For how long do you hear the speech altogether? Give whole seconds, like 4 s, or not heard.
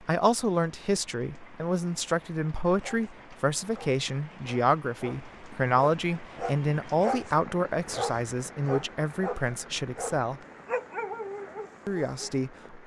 11 s.